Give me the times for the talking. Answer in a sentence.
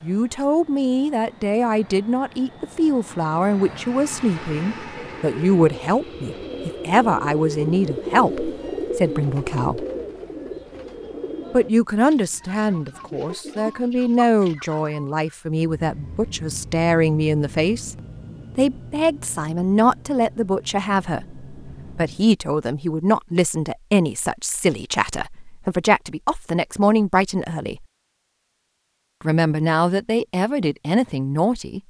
You can hear the talking from 0.0 to 9.8 s, from 11.5 to 17.9 s, from 18.6 to 27.9 s and from 29.2 to 31.8 s.